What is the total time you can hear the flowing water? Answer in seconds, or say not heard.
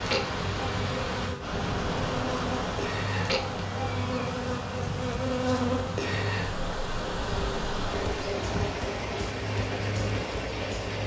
11 s.